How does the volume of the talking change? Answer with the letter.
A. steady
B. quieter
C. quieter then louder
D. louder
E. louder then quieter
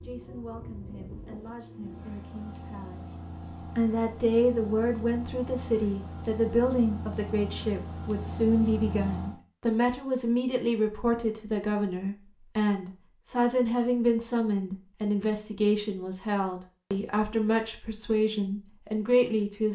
D.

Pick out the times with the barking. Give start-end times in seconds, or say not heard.
not heard.